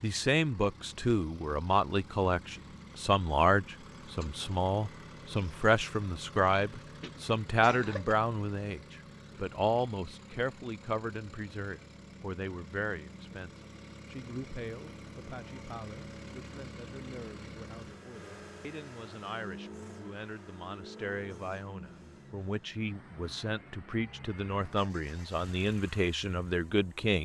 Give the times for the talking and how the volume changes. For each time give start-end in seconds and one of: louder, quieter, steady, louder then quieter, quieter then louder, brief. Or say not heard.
0.0-27.2 quieter then louder.